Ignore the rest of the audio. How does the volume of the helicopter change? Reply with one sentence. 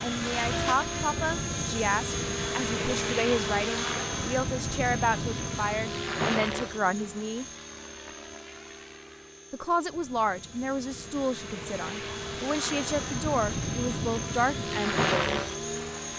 The loudness of the helicopter goes down, then up.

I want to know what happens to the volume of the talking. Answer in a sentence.
The volume of the talking stays about the same.